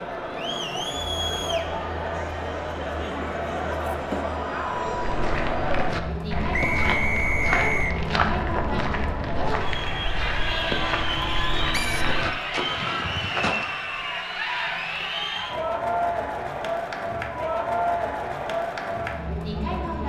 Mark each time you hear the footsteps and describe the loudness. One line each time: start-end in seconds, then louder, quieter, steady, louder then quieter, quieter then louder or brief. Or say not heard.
4.7-13.8 steady.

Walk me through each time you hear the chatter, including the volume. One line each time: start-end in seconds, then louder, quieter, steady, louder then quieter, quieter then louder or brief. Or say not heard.
0.0-20.0 steady.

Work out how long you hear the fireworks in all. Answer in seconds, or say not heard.
not heard.